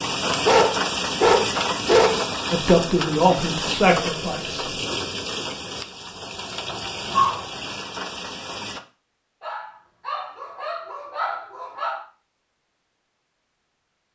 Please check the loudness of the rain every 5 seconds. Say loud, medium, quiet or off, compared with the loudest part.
loud, medium, off.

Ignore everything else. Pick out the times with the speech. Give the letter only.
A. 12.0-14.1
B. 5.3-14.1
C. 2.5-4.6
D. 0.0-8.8
C.